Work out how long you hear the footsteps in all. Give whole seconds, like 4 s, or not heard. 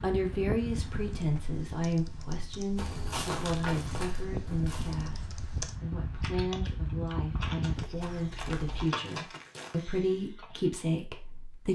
4 s.